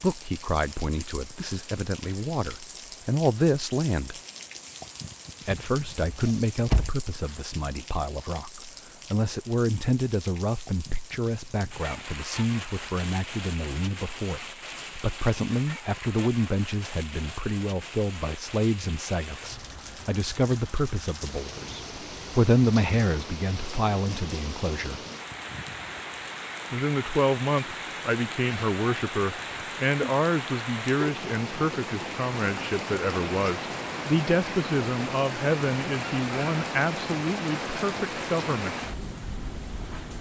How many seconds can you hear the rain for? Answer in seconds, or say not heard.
40 s.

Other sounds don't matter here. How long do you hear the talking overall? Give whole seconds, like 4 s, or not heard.
36 s.